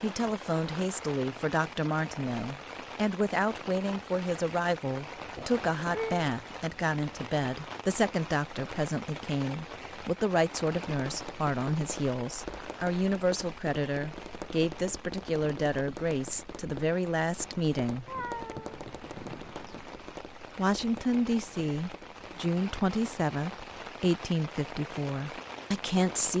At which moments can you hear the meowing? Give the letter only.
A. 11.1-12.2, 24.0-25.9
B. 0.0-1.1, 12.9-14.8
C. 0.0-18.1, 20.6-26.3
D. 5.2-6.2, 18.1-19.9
D.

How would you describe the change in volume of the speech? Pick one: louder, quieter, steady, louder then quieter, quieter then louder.
steady.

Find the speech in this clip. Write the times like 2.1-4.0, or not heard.
0.0-18.1, 20.6-26.3.